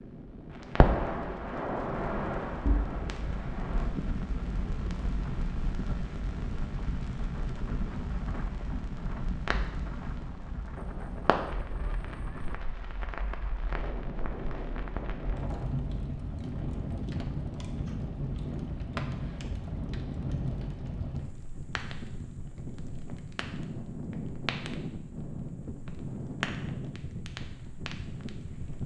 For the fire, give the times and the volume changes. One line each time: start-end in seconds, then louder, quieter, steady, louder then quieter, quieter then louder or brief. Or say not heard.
0.5-28.8 quieter.